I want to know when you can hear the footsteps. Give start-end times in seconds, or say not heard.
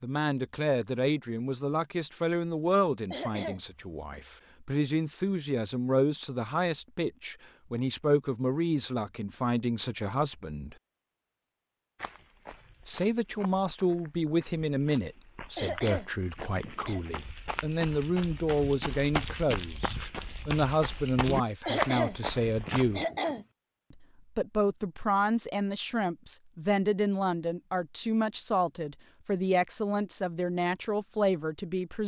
11.9-23.0.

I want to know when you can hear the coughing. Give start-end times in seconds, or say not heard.
3.1-4.2, 15.6-17.0, 21.6-23.4.